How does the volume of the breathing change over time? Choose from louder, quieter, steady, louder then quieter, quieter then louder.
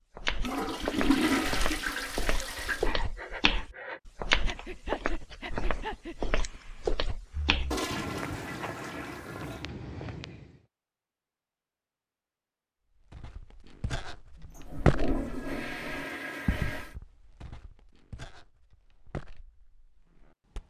quieter.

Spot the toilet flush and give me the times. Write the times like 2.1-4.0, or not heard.
0.4-2.9, 7.7-9.7, 14.4-16.9.